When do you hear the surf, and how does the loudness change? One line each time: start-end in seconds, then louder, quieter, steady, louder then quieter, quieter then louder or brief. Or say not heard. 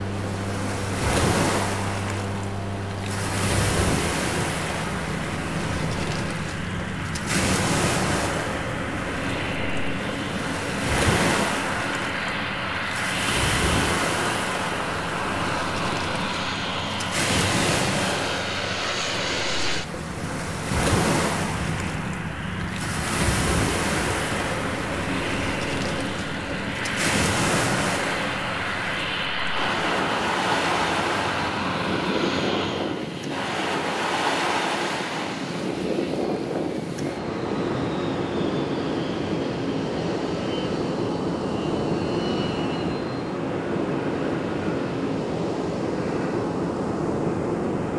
0.0-47.9 steady.